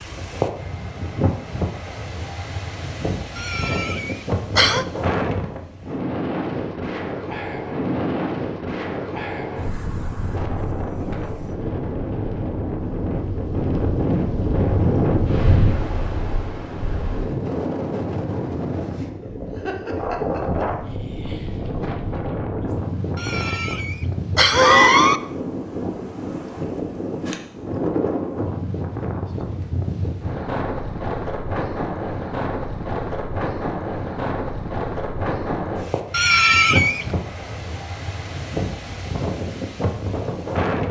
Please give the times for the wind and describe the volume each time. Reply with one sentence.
You can hear the wind from 0.0 to 40.8 s, at a steady volume.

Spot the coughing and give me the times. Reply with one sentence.
The coughing can be heard from 3.4 to 4.8 s, from 23.1 to 25.2 s and from 36.1 to 37.0 s.